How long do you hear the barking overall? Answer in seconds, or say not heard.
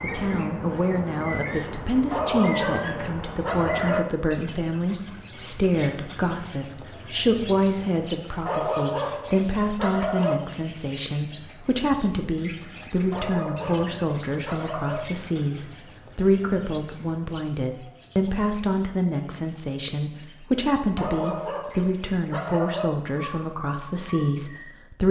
8 s.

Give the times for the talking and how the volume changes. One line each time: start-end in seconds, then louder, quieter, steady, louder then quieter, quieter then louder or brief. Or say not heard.
0.0-25.0 steady.